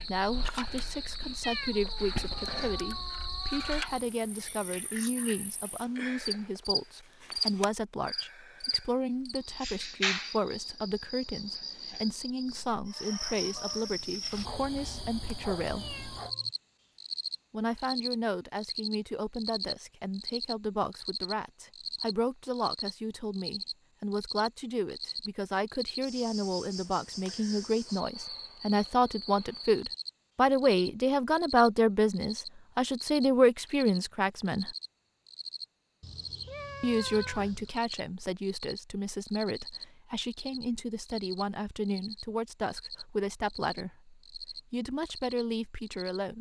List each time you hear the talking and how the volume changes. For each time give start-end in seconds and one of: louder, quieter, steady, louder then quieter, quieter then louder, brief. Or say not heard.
0.0-15.8 steady
17.5-34.8 louder
36.8-46.3 steady.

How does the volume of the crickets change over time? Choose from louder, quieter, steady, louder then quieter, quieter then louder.
quieter.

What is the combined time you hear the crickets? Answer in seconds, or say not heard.
46 s.